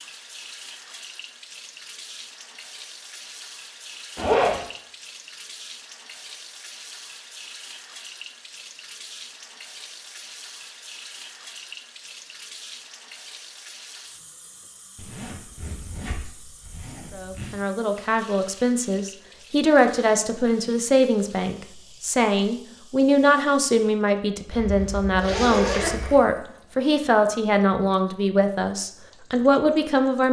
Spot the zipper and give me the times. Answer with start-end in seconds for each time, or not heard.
4.2-4.6, 14.9-17.6, 24.5-26.2.